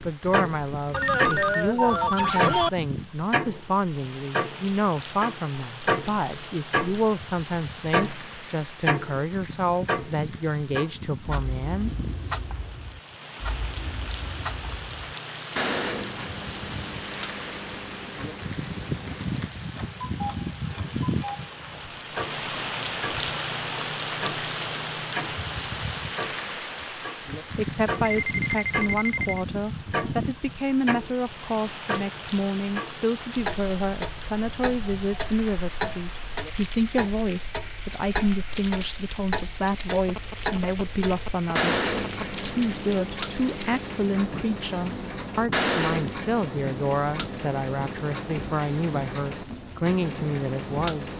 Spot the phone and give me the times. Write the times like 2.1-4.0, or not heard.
0.9-2.7, 28.1-29.4, 40.0-42.3.